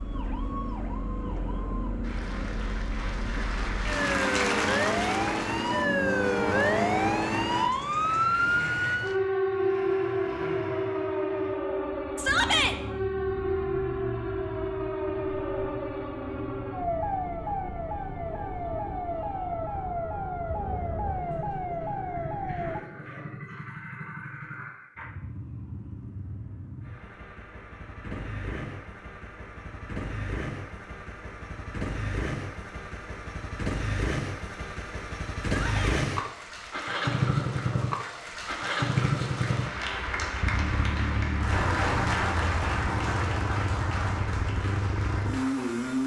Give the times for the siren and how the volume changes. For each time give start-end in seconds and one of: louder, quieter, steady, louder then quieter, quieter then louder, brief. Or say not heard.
0.0-22.8 louder then quieter.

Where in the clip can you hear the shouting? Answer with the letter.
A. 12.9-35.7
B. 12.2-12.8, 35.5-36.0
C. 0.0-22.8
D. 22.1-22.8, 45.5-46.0
B.